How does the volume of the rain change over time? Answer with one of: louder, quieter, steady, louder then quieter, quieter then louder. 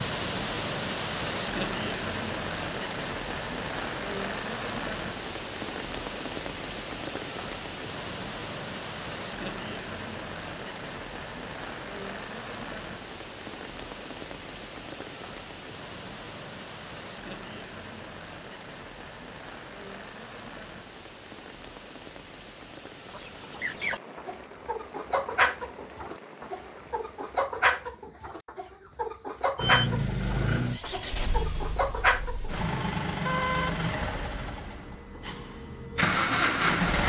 quieter.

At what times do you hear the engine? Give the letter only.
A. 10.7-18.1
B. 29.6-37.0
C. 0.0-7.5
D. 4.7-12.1
B.